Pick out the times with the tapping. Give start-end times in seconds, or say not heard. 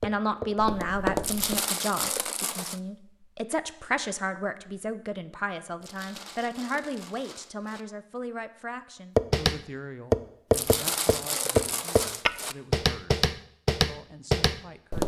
0.0-1.6, 9.2-15.0.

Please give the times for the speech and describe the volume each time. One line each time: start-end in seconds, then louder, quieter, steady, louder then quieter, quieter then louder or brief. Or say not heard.
0.0-15.0 quieter.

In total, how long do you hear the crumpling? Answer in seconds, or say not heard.
6 s.